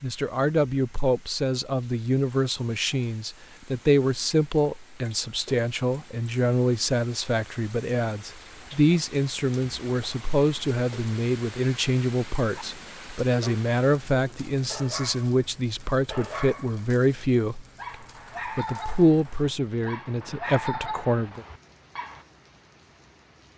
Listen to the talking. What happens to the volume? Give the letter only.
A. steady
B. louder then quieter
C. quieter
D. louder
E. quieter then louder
A.